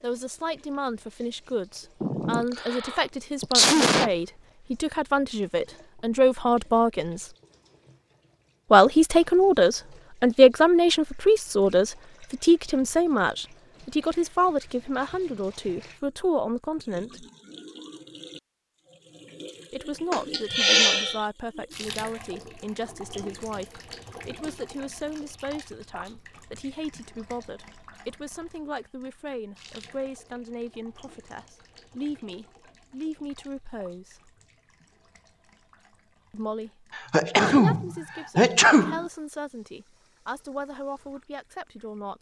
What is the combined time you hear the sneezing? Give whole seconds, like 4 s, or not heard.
5 s.